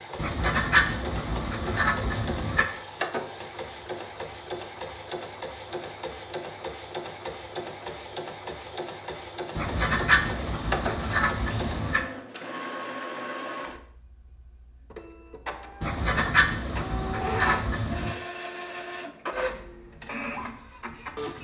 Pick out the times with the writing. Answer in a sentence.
You can hear the writing from 0.1 to 2.6 s, from 9.6 to 12.1 s and from 15.8 to 18.1 s.